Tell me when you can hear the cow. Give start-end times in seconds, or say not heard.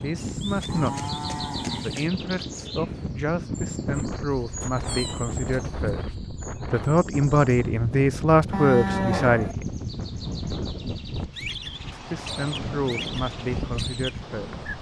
0.3-2.1, 8.5-9.6.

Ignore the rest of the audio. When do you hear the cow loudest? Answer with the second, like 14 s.
9 s.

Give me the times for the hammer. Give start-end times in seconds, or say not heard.
not heard.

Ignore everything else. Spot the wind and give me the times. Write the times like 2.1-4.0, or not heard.
0.0-14.7.